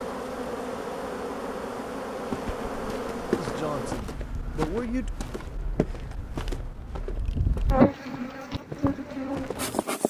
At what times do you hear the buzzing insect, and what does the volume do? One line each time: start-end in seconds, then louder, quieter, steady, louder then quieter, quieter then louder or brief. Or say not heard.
0.0-10.0 quieter then louder.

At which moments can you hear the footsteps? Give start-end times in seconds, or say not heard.
2.2-9.8.